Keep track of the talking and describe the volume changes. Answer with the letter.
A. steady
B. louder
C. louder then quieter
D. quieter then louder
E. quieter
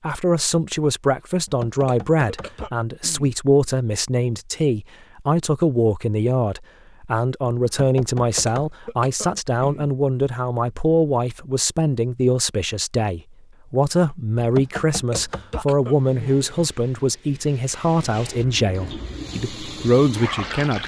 A.